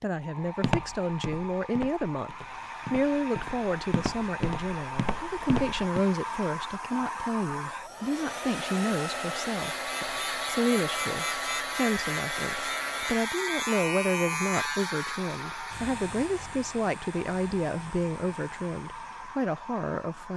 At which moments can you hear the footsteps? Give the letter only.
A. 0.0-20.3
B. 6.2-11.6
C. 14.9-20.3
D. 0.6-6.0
D.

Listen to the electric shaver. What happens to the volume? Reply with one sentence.
The loudness of the electric shaver goes down.